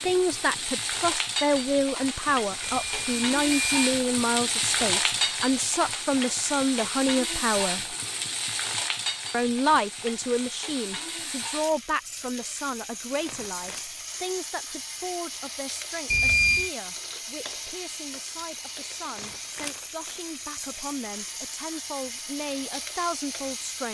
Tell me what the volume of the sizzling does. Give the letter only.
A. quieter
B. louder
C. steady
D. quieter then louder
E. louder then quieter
A.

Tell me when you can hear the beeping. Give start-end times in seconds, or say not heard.
2.6-3.9, 16.1-16.7.